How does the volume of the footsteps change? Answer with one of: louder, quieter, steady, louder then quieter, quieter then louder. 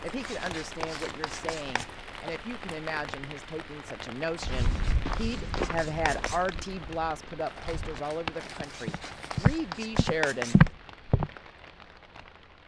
quieter then louder.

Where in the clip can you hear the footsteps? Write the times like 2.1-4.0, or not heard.
4.4-11.3.